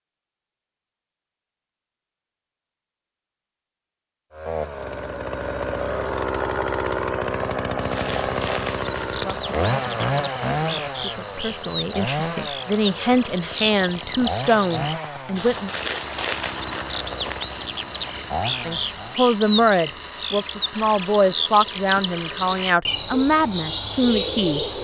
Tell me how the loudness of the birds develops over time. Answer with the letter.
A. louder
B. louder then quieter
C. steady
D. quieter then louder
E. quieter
A.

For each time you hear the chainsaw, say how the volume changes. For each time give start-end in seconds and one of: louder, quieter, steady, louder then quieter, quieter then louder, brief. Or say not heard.
4.3-19.2 quieter.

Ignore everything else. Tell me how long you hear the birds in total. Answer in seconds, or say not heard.
17 s.